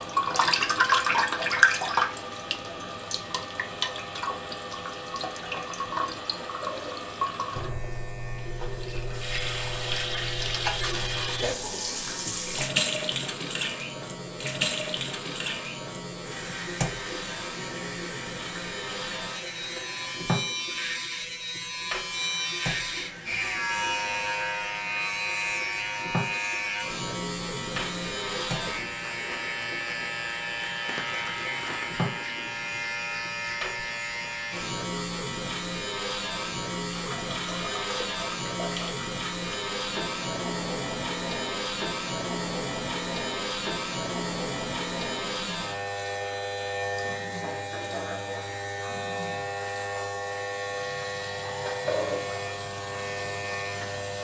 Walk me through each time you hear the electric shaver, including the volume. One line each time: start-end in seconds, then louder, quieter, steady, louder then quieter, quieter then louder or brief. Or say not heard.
0.0-54.1 louder.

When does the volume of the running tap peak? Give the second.
1 s.